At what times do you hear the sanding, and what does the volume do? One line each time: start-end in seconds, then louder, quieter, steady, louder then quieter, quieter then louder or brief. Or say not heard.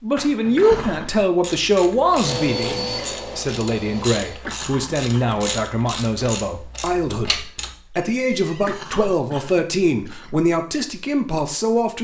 not heard.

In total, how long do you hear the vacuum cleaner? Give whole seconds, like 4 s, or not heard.
2 s.